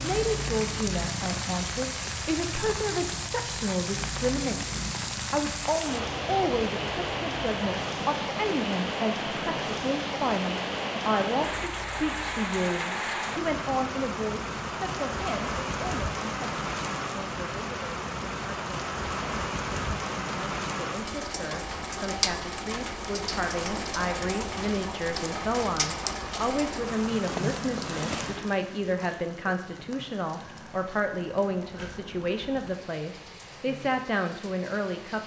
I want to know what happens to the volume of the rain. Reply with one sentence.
The loudness of the rain goes down.